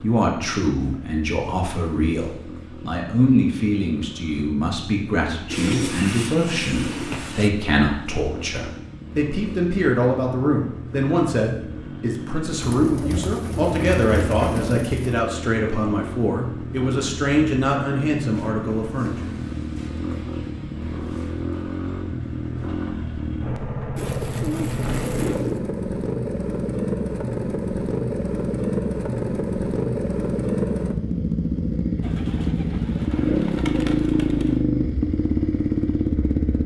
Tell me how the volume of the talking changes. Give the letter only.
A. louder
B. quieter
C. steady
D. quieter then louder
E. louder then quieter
C.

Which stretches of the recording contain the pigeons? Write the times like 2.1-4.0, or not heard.
5.5-7.5, 12.6-15.2, 23.9-25.6, 32.0-34.6.